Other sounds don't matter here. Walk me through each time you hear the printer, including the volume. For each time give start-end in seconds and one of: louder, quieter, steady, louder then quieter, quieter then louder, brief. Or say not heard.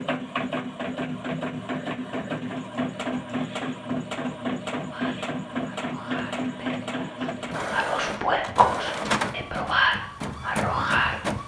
0.0-11.4 steady.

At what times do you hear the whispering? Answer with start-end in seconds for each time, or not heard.
4.8-11.2.